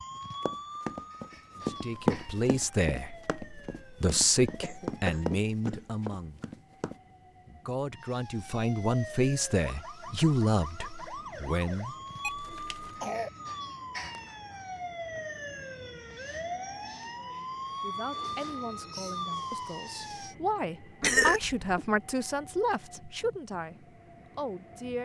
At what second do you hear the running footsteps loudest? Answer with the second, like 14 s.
2 s.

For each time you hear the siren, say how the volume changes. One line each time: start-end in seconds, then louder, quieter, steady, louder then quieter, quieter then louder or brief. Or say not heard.
0.0-5.2 quieter
7.9-20.4 louder.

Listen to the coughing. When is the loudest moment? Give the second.
21 s.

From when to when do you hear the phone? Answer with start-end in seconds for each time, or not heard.
12.2-13.1.